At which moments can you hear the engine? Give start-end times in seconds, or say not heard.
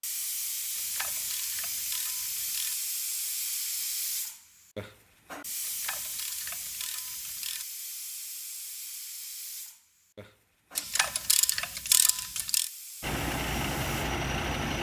13.0-14.7.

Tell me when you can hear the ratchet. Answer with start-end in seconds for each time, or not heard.
0.8-2.8, 5.6-7.7, 10.8-12.7.